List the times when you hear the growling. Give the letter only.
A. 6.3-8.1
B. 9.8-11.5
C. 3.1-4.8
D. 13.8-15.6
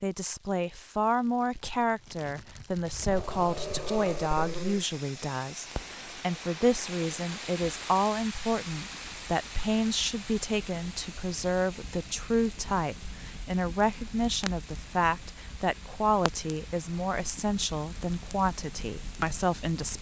C.